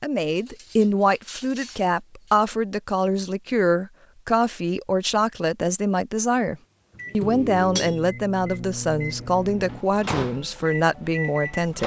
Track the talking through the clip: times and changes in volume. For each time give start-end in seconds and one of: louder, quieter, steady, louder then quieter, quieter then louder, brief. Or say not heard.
0.0-11.8 steady.